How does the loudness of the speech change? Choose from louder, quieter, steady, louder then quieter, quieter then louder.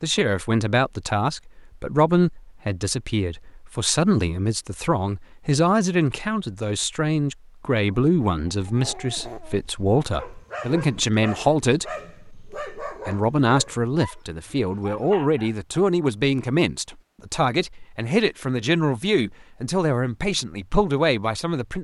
steady.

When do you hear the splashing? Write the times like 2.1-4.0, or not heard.
not heard.